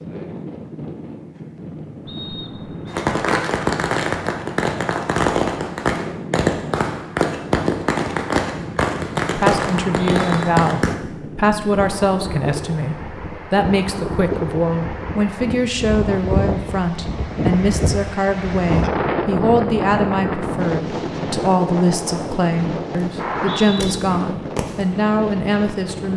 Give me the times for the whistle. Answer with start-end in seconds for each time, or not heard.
2.0-3.0, 9.7-10.4, 23.1-23.9.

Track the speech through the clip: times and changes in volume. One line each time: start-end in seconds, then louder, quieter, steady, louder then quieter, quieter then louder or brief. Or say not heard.
9.3-26.1 steady.